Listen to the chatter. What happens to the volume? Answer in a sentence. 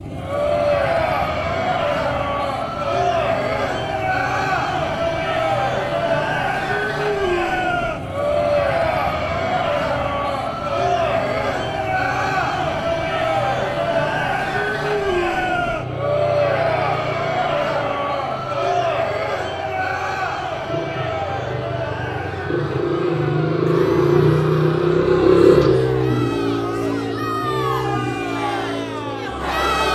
The volume of the chatter goes down.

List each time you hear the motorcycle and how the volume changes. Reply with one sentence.
You can hear the motorcycle from 0.0 to 29.9 s, getting louder.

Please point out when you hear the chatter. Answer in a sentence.
The chatter can be heard from 0.1 to 29.9 s.